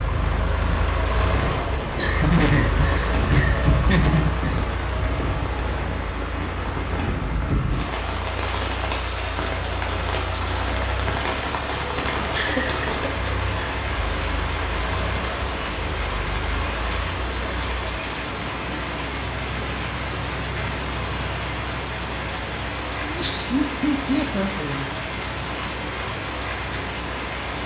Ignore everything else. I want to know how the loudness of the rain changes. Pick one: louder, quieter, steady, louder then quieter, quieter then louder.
steady.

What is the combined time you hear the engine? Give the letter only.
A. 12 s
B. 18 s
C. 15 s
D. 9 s
B.